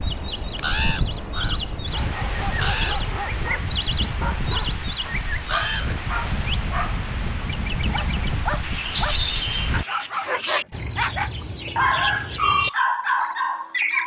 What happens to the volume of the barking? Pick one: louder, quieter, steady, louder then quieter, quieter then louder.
louder.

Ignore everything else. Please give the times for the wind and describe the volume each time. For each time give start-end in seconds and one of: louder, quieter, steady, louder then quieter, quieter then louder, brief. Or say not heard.
0.0-9.8 steady.